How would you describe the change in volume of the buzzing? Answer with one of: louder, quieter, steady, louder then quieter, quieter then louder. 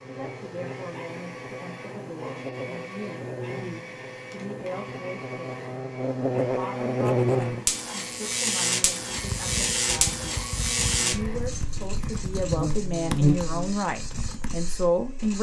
louder.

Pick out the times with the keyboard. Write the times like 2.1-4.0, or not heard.
9.1-14.6.